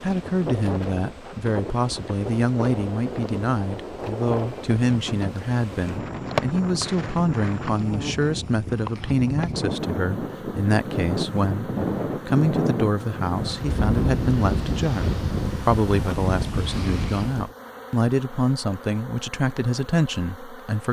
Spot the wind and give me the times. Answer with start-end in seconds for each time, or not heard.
0.0-17.5.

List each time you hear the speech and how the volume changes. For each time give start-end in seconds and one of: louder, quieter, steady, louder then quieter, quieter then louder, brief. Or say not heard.
0.0-20.8 steady.